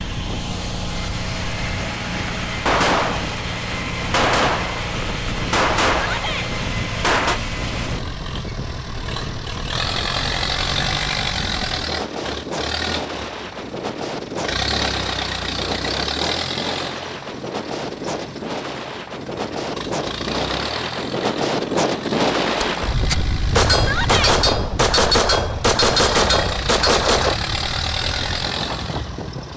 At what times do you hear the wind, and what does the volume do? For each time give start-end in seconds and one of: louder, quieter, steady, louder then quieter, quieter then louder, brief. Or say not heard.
0.0-29.5 louder then quieter.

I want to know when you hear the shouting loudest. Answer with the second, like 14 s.
24 s.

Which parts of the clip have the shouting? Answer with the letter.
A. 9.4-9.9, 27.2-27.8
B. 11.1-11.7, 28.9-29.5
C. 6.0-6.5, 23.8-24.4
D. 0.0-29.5
C.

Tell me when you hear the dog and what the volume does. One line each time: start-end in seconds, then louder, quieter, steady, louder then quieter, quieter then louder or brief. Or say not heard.
not heard.